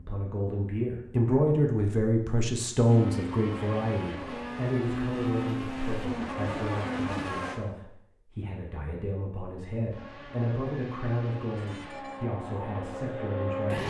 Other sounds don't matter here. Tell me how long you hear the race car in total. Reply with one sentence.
The race car can be heard for 9 seconds in total.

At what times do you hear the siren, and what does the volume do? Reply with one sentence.
The siren can't be heard in this clip.